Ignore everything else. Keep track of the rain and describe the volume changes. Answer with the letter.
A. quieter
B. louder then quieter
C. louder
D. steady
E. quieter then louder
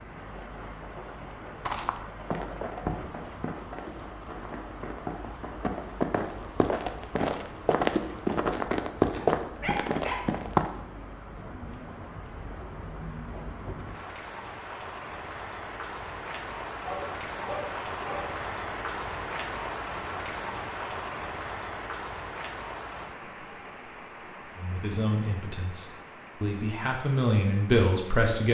B.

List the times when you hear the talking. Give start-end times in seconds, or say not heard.
24.6-28.4.